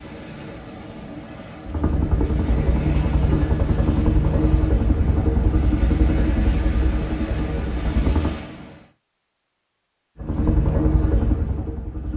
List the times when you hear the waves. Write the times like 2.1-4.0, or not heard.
0.0-8.9.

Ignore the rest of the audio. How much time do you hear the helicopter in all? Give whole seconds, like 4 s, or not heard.
9 s.